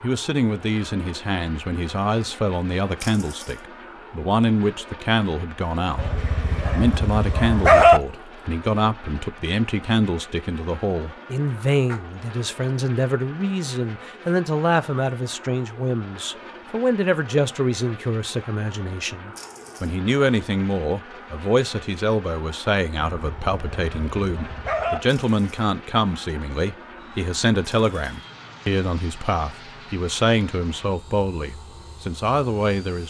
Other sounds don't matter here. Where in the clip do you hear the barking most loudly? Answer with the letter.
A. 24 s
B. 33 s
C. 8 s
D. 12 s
C.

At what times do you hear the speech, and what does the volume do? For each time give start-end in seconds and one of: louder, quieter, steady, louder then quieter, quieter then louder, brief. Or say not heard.
0.0-33.0 steady.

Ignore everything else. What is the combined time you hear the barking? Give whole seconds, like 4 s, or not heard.
4 s.